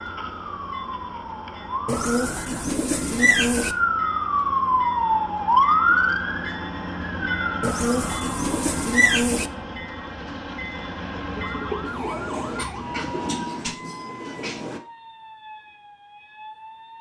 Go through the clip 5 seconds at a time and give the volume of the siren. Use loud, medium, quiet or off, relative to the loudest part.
loud, loud, quiet, quiet.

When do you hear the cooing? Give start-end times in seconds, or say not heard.
1.9-3.8, 7.6-9.5, 11.3-13.4.